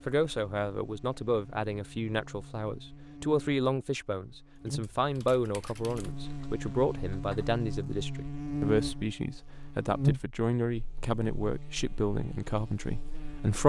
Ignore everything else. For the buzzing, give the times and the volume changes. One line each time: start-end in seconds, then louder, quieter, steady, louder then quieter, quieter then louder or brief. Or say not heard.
0.0-13.6 louder then quieter.